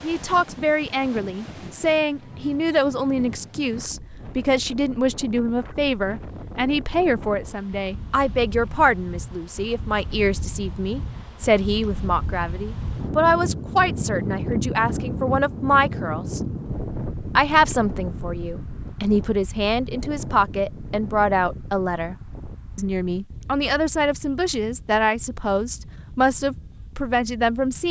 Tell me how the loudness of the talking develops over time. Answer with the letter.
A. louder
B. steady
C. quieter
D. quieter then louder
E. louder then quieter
B.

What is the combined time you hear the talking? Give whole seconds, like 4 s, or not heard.
26 s.